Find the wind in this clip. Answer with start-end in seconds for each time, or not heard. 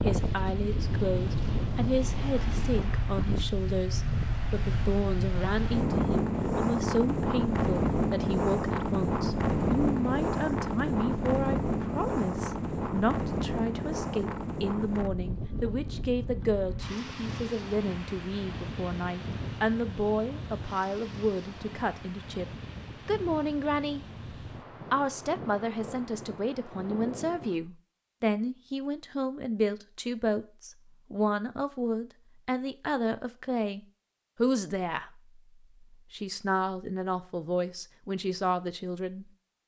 0.0-27.6.